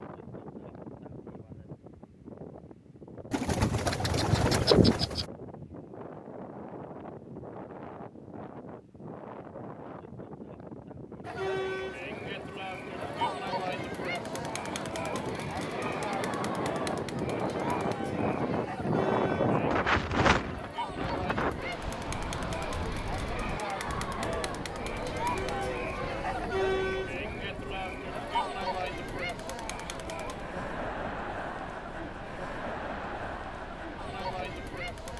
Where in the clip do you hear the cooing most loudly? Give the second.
5 s.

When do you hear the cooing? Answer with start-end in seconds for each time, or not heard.
3.3-5.2.